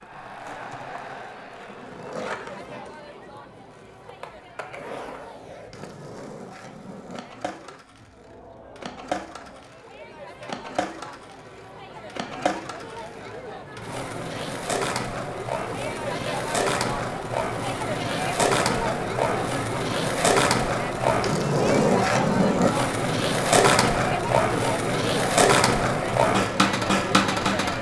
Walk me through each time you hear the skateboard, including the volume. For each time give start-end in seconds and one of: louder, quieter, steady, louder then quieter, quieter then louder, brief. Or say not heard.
0.0-27.7 louder.